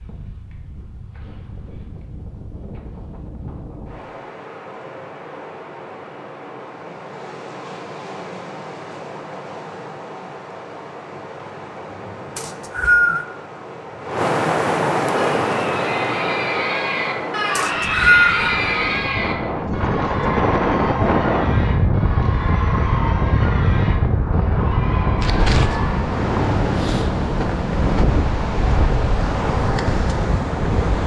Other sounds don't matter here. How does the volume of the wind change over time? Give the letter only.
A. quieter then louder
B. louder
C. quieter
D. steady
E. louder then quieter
B.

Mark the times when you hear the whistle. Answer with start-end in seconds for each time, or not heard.
12.3-13.2, 17.6-18.6.